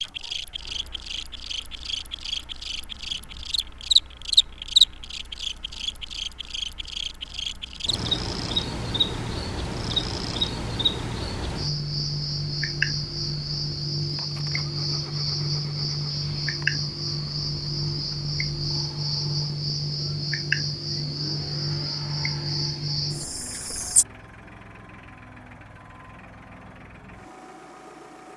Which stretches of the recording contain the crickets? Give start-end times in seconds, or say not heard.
0.0-24.1.